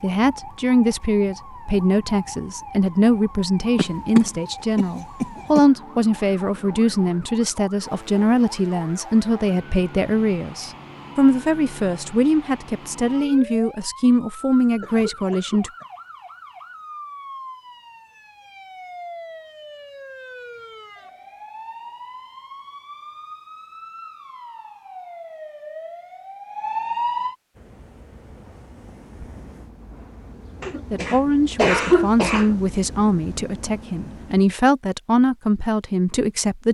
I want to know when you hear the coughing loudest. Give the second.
32 s.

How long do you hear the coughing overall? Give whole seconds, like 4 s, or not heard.
5 s.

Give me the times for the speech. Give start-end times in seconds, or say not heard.
0.0-15.7, 30.9-36.6.